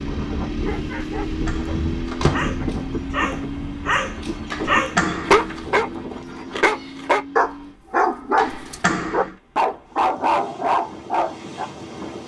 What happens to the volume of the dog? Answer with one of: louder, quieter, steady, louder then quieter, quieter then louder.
louder.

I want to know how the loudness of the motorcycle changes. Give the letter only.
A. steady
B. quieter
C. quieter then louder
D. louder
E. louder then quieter
B.